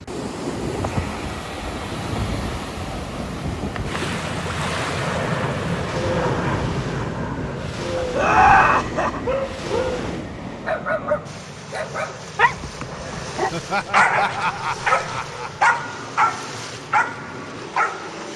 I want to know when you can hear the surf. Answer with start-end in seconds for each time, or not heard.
0.0-18.3.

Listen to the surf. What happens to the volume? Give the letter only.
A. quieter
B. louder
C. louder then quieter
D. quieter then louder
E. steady
A.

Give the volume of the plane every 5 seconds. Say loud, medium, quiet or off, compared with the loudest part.
medium, loud, medium, medium.